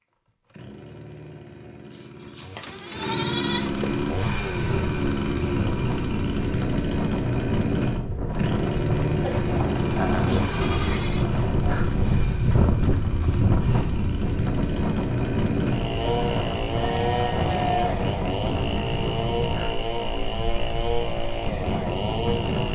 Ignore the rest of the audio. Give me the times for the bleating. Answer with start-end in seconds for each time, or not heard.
1.9-4.0, 9.2-11.2, 16.0-17.9.